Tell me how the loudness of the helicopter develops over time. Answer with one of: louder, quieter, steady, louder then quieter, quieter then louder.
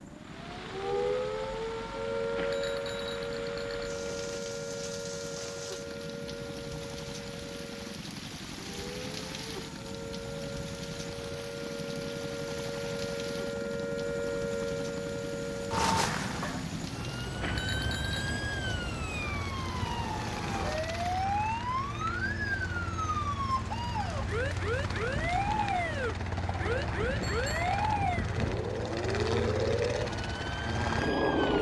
louder.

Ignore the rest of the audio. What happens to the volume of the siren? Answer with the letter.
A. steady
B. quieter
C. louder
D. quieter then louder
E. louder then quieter
D.